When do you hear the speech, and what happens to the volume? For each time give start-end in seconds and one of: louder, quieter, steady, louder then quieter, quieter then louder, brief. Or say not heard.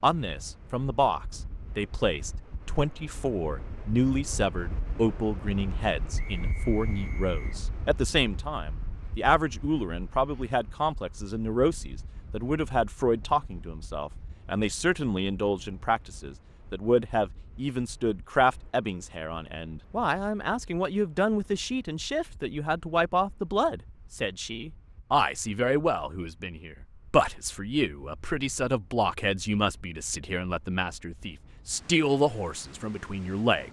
0.0-33.6 steady.